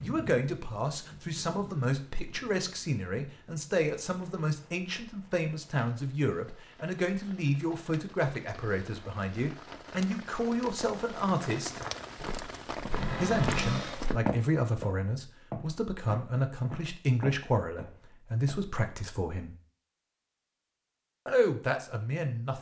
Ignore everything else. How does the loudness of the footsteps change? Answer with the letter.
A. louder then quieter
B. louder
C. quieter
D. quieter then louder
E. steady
A.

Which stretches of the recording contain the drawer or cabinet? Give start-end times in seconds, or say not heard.
12.9-14.1.